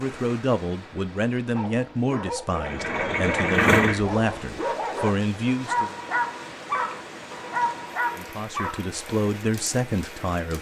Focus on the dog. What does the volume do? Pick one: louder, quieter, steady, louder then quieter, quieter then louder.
louder.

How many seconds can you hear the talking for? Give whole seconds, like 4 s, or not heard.
8 s.